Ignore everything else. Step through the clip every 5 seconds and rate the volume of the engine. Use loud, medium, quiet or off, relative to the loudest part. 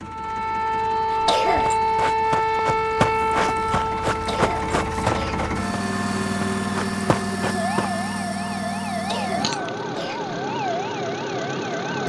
medium, loud, loud.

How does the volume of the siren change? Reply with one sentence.
The volume of the siren goes down.